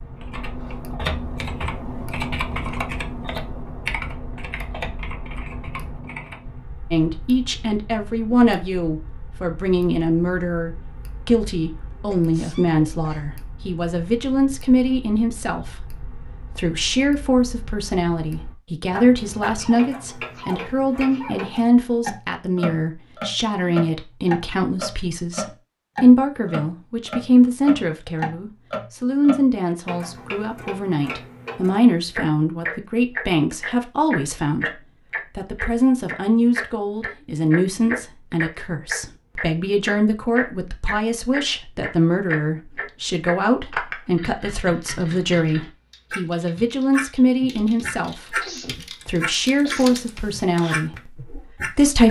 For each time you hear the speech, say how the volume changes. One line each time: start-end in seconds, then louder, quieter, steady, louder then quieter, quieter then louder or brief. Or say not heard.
6.9-52.0 steady.